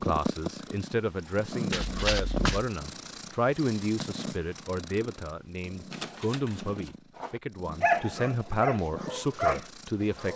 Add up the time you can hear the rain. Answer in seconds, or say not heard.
not heard.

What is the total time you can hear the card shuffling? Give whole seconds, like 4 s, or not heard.
2 s.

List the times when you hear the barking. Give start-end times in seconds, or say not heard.
7.2-10.3.